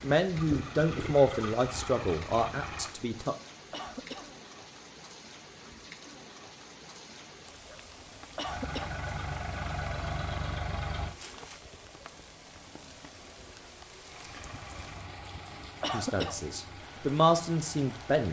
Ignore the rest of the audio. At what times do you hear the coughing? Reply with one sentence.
The coughing can be heard from 3.7 to 4.3 s, from 8.3 to 9.0 s and from 15.8 to 16.4 s.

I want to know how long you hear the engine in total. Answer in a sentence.
The engine can be heard for 10 seconds in total.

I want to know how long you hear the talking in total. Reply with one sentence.
The talking can be heard for 6 seconds in total.